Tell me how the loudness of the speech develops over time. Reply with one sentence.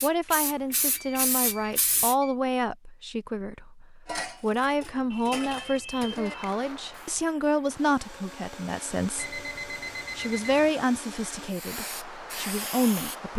The volume of the speech stays about the same.